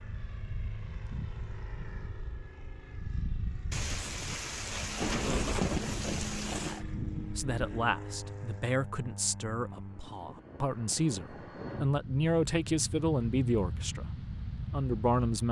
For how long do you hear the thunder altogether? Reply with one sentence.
The thunder can be heard for 3 seconds in total.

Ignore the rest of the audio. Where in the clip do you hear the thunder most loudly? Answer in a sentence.
The volume of the thunder peaks at 6 seconds.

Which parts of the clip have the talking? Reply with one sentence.
You can hear the talking from 6.7 to 15.4 s.